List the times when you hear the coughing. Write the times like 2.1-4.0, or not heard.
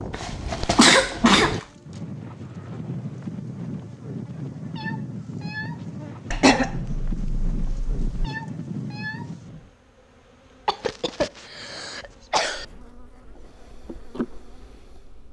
0.1-1.6, 6.3-8.2, 10.7-12.7.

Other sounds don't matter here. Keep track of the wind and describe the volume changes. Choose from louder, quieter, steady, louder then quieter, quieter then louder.
steady.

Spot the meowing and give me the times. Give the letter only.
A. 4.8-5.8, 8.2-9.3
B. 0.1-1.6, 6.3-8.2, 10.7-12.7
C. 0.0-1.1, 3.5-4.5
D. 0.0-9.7
A.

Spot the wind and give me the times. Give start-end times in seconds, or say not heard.
0.0-9.7.